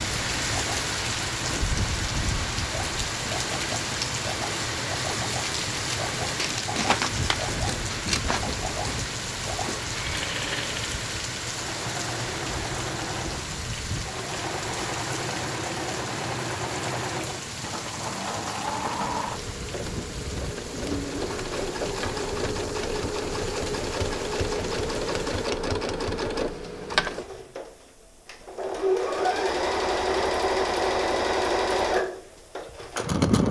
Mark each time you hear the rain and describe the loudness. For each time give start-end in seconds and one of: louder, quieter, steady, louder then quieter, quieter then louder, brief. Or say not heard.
0.0-25.5 quieter.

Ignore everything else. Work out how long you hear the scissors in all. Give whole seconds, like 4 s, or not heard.
2 s.